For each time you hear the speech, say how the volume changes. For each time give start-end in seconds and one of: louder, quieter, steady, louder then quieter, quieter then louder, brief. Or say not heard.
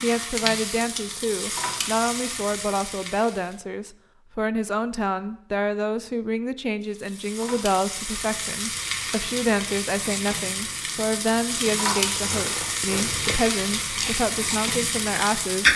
0.0-15.7 steady.